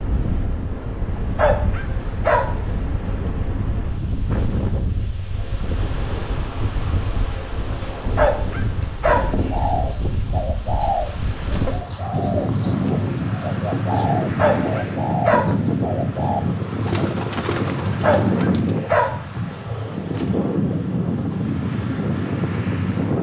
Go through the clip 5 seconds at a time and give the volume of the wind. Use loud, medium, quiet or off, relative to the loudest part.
medium, medium, loud, loud, loud.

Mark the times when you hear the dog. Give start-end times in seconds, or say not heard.
1.1-2.5, 8.0-9.9, 14.3-15.4, 17.8-19.8.